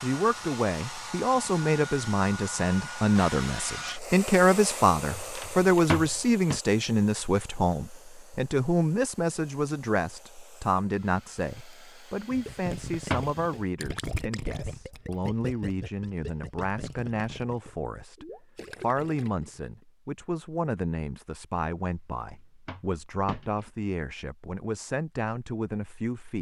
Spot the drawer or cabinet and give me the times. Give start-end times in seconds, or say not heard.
5.2-6.6, 12.3-13.3, 22.2-23.7.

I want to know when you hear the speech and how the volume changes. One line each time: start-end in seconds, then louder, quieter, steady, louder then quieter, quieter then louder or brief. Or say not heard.
0.0-26.3 quieter.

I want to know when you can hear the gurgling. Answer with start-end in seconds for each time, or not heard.
12.1-19.9.